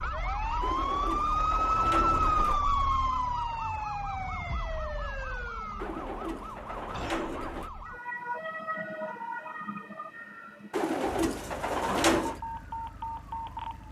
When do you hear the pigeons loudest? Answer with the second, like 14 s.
12 s.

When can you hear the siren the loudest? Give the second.
2 s.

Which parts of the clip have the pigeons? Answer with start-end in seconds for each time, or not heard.
0.6-2.6, 5.8-7.7, 10.7-12.4.